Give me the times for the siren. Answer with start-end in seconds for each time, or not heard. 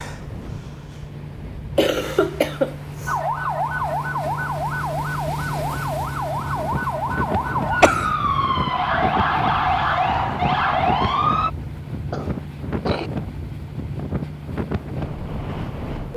3.0-11.5.